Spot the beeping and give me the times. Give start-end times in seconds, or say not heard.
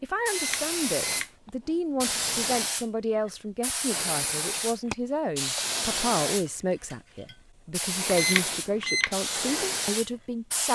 0.2-1.3, 8.1-9.2.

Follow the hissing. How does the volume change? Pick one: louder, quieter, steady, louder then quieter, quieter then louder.
steady.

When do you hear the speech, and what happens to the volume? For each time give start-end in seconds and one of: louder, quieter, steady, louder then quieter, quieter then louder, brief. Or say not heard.
0.0-10.6 steady.